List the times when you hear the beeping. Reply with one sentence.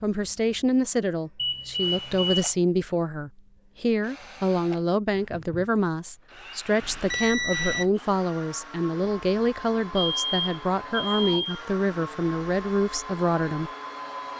The beeping can be heard from 1.4 to 2.5 s, from 6.8 to 7.9 s and from 9.9 to 11.7 s.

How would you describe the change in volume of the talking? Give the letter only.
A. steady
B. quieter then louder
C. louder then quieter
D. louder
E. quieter
A.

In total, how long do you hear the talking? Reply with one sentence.
The talking can be heard for 14 seconds in total.